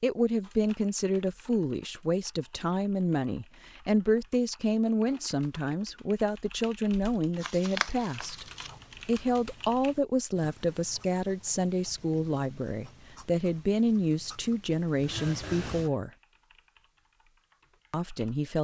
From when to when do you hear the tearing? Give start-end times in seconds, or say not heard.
7.3-8.8.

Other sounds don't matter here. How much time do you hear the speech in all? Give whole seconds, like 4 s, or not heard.
16 s.